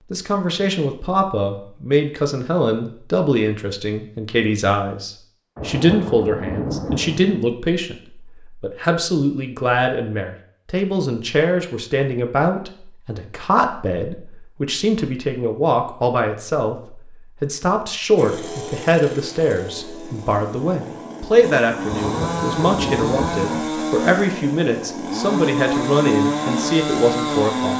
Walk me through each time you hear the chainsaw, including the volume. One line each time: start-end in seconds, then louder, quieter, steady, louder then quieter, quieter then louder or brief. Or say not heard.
18.1-27.7 louder.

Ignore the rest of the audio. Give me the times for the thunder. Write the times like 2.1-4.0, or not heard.
5.5-7.4, 21.9-23.7.